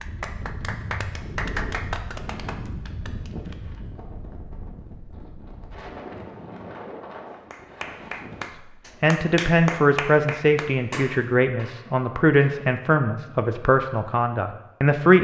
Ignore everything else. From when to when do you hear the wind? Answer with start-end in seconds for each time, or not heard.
0.0-8.5.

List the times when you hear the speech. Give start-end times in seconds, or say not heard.
9.0-15.1.